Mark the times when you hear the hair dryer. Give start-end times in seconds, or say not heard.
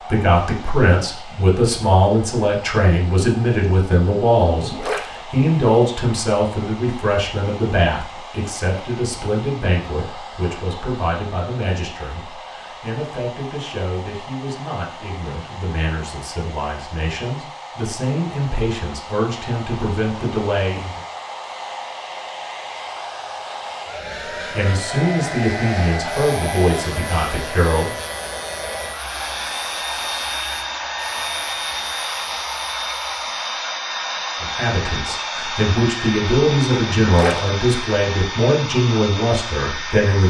0.0-40.2.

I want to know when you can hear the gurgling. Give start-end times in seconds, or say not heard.
4.5-5.1, 36.9-37.4.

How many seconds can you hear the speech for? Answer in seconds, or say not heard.
31 s.